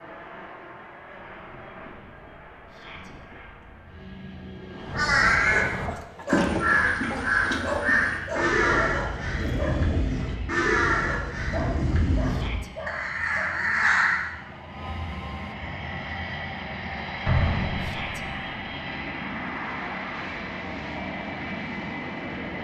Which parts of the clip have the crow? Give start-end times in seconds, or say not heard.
4.8-14.3.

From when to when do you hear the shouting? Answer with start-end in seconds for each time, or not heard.
2.6-3.1, 12.2-12.7, 17.8-18.2.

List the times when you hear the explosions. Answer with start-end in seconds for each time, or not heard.
17.2-18.6.